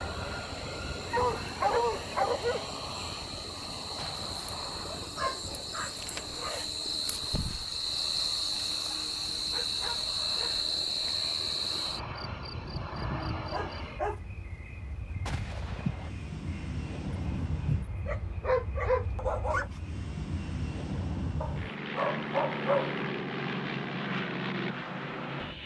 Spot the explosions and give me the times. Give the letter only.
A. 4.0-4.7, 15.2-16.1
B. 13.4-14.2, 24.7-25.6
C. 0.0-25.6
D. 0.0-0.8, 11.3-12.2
A.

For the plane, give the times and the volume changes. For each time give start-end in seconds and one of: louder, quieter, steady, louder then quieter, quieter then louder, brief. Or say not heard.
0.0-25.6 quieter then louder.